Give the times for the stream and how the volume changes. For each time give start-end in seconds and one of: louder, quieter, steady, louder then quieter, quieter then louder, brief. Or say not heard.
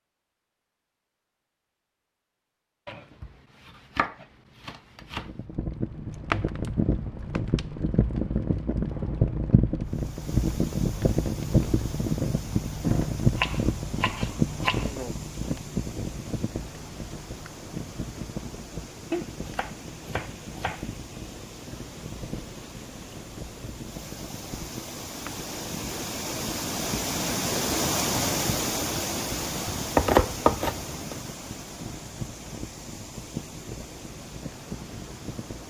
9.8-35.6 louder then quieter.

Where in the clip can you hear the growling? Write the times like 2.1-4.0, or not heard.
not heard.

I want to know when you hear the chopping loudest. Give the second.
30 s.